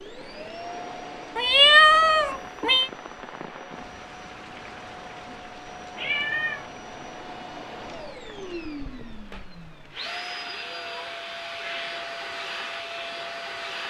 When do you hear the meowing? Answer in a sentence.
The meowing can be heard from 1.4 to 2.9 s, from 6.0 to 6.7 s and from 10.4 to 12.1 s.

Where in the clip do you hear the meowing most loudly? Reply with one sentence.
The loudest moment of the meowing is at 2 seconds.